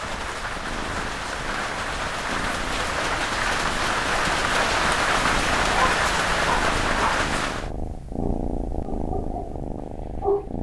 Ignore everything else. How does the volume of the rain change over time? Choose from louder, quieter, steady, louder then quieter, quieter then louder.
louder.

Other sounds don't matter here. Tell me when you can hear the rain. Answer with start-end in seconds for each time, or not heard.
0.0-7.7.